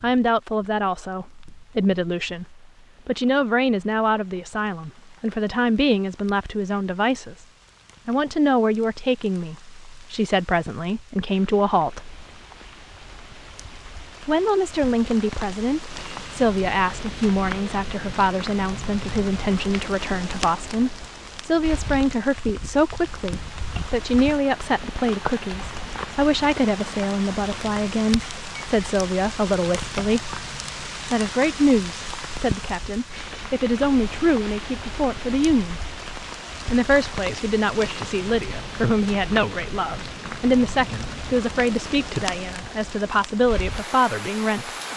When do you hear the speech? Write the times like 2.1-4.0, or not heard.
0.0-7.5, 8.1-12.2, 14.2-30.4, 31.1-35.8, 36.7-44.7.